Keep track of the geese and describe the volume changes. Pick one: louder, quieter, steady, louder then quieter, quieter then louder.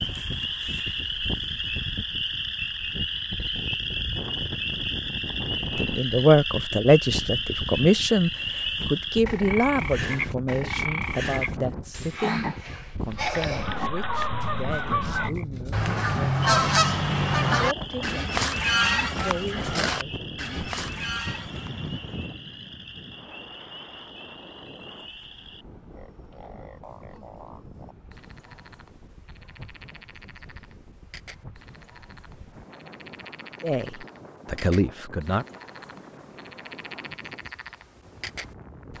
louder then quieter.